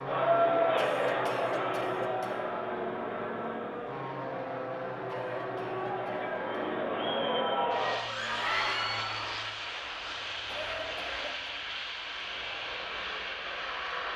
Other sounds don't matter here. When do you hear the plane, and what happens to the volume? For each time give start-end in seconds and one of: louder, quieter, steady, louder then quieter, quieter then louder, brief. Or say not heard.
0.0-14.1 steady.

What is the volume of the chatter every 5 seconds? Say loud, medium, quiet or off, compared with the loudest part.
loud, loud, off.